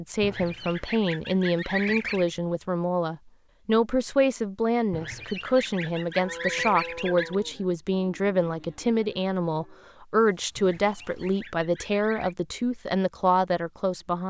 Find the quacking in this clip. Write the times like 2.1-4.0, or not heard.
0.2-2.3, 4.9-7.3, 10.6-12.3.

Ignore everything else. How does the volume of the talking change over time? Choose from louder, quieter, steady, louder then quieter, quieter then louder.
steady.